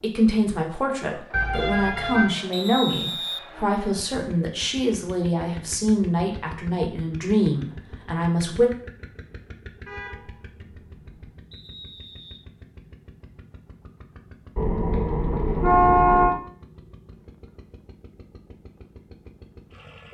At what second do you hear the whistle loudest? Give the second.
3 s.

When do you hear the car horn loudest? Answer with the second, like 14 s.
16 s.